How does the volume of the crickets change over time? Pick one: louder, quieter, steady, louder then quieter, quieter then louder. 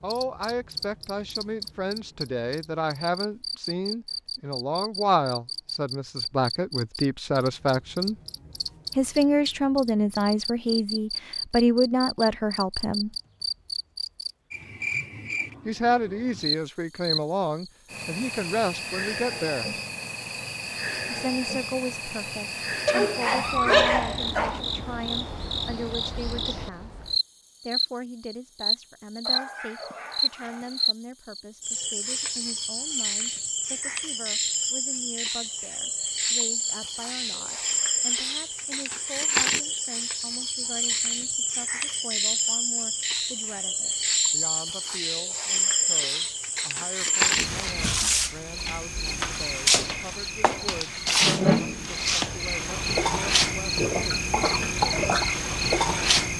louder.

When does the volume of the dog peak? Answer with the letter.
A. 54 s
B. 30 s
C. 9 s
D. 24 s
D.